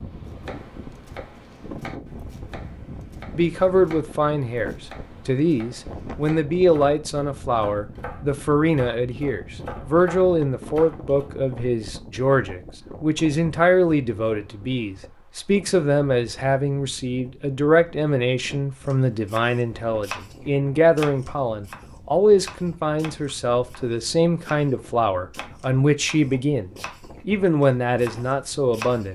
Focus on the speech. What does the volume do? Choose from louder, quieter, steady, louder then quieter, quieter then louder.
steady.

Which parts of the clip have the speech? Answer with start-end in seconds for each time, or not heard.
3.4-29.1.